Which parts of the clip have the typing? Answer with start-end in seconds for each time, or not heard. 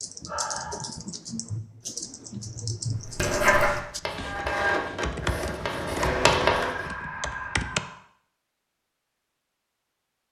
0.0-7.8.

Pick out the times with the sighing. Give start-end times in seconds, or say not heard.
0.2-0.9, 6.0-8.0.